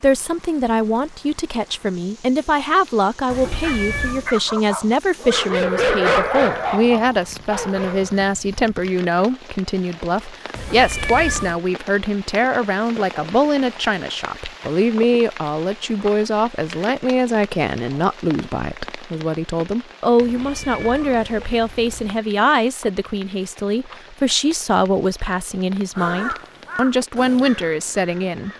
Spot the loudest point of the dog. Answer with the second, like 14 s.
6 s.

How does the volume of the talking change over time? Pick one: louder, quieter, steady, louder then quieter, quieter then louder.
steady.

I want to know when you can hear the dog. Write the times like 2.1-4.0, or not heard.
2.6-8.2.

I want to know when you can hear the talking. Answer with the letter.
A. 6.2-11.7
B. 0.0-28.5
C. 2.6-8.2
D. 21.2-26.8
B.